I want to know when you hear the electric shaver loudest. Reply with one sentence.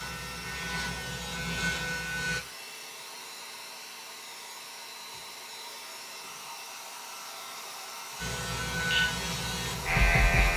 The loudest moment of the electric shaver is at 10 seconds.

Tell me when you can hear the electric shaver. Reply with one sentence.
The electric shaver can be heard from 0.0 to 2.4 s and from 8.2 to 10.5 s.